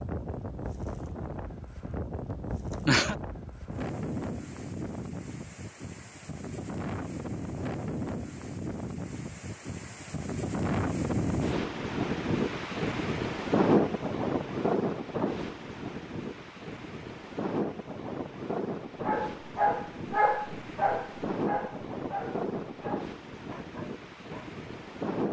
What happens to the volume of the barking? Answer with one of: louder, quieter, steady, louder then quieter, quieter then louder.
quieter.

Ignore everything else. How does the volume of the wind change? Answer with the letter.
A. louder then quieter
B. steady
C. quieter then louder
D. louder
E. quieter
A.